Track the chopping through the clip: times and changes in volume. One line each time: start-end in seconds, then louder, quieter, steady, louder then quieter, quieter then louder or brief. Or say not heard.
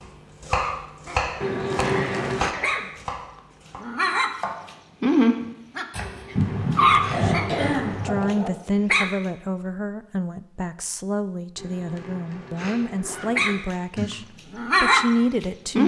0.0-4.8 quieter
5.4-6.4 brief.